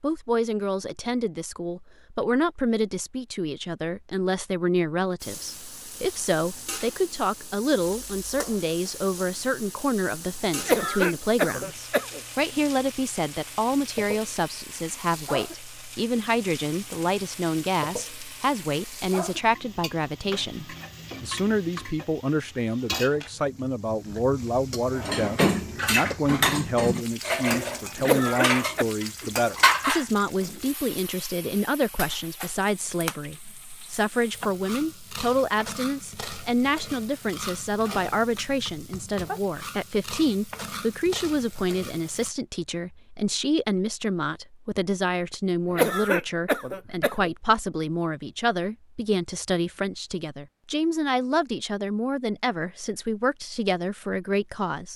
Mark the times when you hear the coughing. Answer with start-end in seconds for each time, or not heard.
10.6-12.2, 28.0-28.9, 45.7-47.3.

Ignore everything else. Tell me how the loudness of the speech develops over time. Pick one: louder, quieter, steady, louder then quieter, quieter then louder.
steady.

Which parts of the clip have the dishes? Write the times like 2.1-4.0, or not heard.
24.9-30.6.